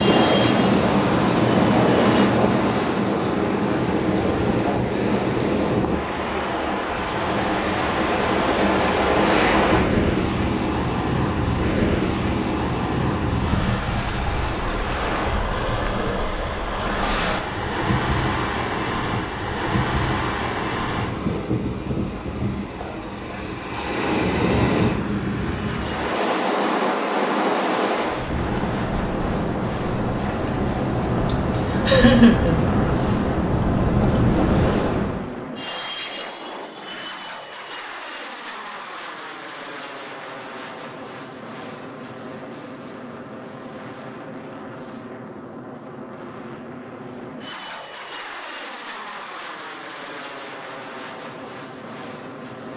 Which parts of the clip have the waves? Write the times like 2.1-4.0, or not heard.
0.0-35.3.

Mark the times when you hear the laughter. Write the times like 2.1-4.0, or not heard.
31.2-33.0.